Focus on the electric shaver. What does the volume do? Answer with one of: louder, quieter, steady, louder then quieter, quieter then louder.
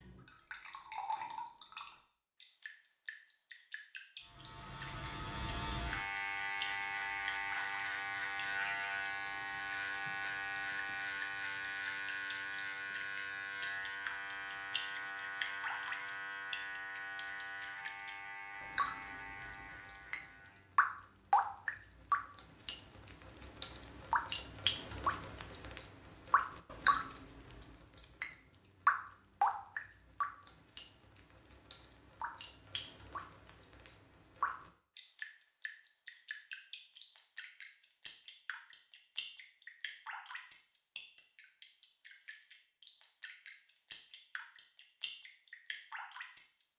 quieter.